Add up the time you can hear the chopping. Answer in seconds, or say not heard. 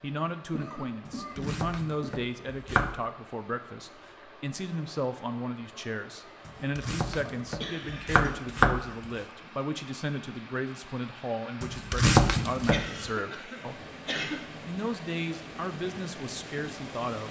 6 s.